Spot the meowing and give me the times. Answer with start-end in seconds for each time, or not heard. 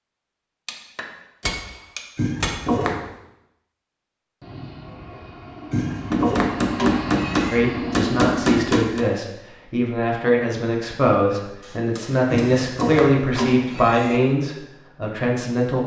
2.1-3.0, 5.7-7.6, 12.3-14.2.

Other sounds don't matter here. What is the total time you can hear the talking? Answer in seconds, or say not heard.
8 s.